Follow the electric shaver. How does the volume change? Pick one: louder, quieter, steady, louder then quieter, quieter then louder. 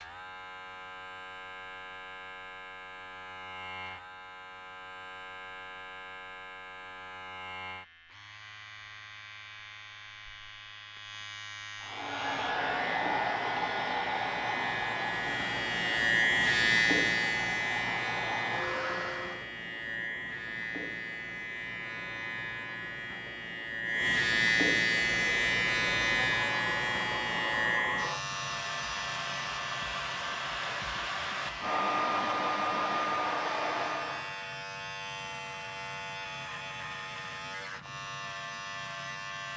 louder then quieter.